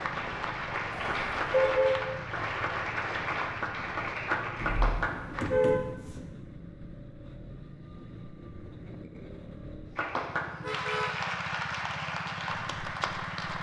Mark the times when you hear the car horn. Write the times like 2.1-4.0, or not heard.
0.9-1.9, 4.5-6.2, 10.6-11.2.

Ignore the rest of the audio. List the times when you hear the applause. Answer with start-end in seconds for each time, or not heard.
0.0-5.5, 9.9-13.5.